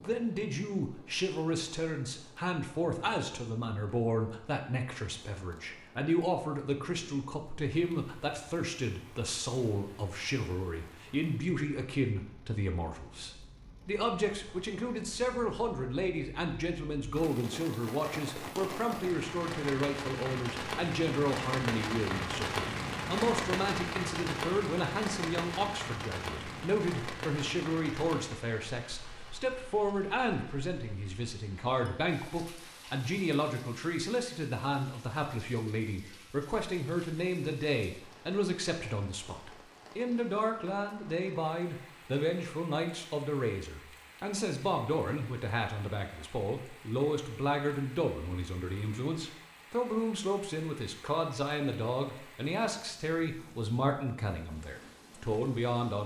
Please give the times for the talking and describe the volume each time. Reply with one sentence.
You can hear the talking from 0.0 to 56.0 s, at a steady volume.